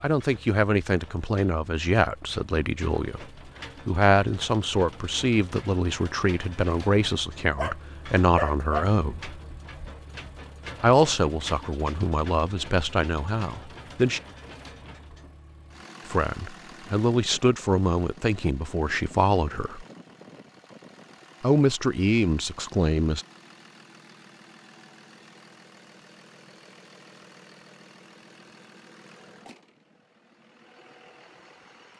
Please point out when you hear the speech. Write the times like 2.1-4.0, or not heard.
0.0-3.2, 3.9-9.4, 10.8-14.2, 16.1-19.9, 21.4-23.2.